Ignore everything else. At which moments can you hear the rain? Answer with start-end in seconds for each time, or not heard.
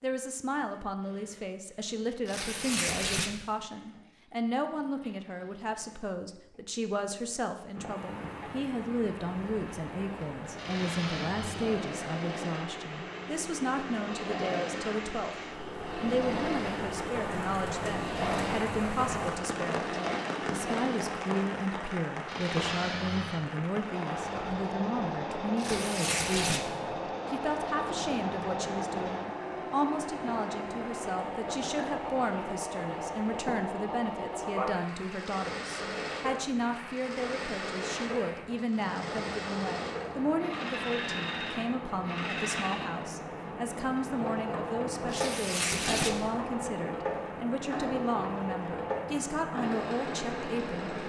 7.7-51.0.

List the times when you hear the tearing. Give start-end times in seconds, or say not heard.
2.2-3.5, 25.6-26.7, 45.1-46.3.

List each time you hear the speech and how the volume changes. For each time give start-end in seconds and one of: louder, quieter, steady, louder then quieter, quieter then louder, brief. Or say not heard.
0.0-15.3 steady
15.9-51.0 steady.